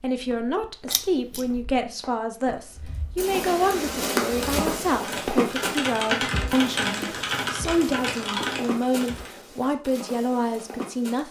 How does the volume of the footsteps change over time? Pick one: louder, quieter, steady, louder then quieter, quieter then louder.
louder then quieter.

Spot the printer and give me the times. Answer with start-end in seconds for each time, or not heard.
not heard.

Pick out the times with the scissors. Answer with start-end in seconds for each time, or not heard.
0.9-1.6.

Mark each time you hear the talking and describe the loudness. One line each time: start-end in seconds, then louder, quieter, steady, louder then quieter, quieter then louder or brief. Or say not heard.
0.0-11.2 steady.